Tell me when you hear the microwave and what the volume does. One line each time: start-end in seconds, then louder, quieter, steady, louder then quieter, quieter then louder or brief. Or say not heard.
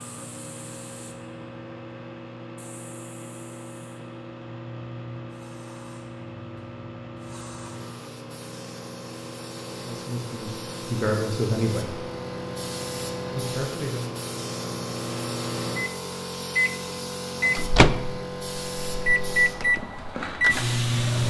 0.0-21.2 louder.